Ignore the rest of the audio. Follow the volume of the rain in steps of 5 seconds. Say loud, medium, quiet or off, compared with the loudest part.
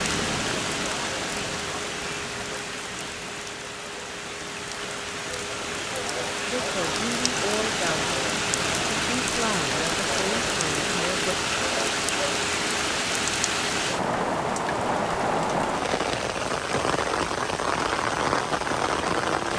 medium, loud, loud, loud.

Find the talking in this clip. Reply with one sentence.
You can hear the talking from 6.5 to 8.1 s and from 8.9 to 11.3 s.